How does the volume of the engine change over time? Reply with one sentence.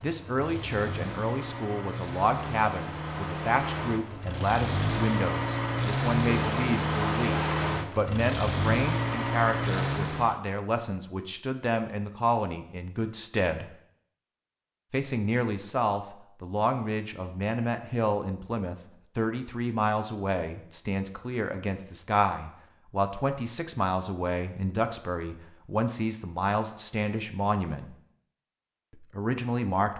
The volume of the engine goes up.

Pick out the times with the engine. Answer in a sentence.
You can hear the engine from 0.0 to 10.4 s.